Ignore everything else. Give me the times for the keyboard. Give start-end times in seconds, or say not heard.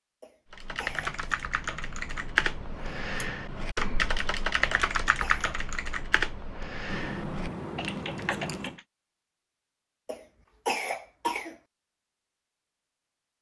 0.5-8.8.